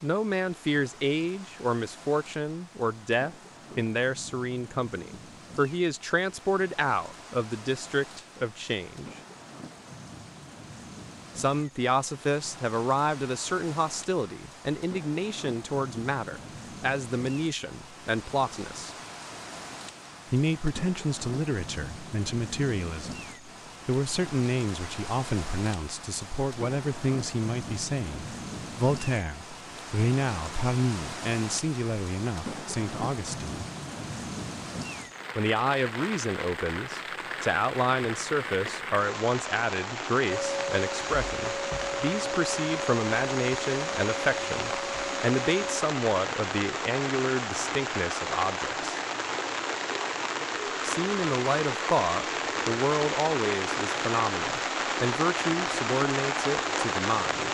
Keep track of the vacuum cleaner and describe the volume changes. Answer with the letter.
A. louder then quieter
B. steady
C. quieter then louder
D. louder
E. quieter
B.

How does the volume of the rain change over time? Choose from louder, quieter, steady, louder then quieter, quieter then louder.
louder.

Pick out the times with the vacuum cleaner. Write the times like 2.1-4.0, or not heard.
40.2-45.9.